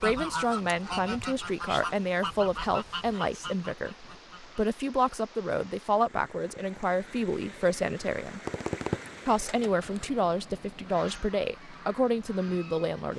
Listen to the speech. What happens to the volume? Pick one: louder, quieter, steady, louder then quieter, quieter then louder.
steady.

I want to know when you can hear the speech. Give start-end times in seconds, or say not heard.
0.0-8.4, 9.2-13.1.